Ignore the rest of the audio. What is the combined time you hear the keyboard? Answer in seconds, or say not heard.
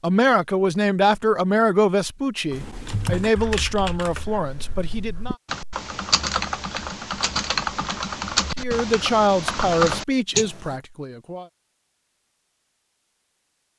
8 s.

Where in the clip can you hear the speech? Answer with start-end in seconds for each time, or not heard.
0.0-5.3, 8.6-11.4.